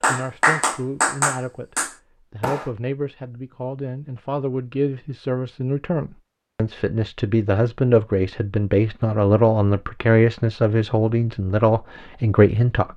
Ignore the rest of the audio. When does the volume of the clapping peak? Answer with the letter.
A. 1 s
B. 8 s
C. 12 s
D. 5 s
A.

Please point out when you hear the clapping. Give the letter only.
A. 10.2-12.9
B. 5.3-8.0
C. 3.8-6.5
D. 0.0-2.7
D.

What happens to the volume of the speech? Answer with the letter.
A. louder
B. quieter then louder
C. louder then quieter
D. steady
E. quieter
A.